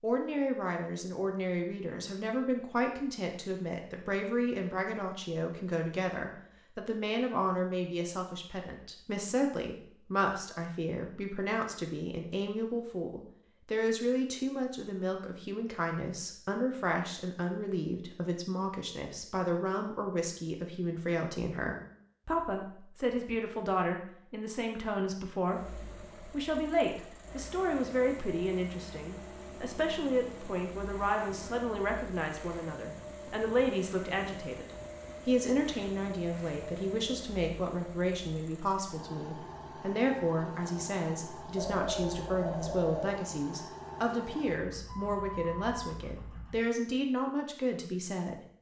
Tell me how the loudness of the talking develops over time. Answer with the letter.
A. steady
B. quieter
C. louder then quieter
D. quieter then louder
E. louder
A.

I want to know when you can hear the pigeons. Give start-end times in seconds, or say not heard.
41.5-43.1.